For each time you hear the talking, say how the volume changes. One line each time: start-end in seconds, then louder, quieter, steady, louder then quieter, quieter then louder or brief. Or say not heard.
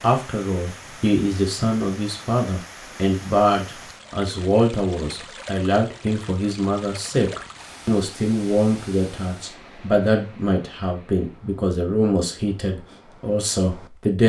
0.0-14.2 steady.